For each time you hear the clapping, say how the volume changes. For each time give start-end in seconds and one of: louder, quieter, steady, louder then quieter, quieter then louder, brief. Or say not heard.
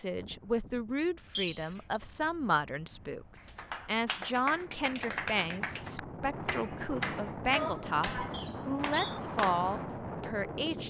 3.4-10.3 steady.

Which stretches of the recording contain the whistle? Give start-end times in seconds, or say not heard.
1.4-2.0, 8.3-9.2.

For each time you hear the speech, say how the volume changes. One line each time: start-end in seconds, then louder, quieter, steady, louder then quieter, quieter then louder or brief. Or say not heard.
0.0-10.8 steady.